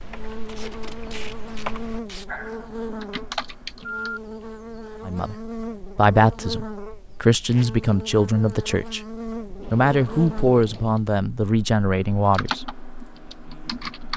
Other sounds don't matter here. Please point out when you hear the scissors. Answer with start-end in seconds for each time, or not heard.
not heard.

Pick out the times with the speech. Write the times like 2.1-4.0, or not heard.
5.0-9.0, 9.7-12.7.